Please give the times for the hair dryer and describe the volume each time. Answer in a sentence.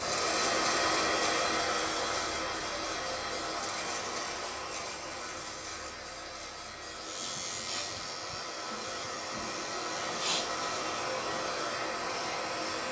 The hair dryer can be heard from 0.0 to 12.8 s, getting quieter then louder.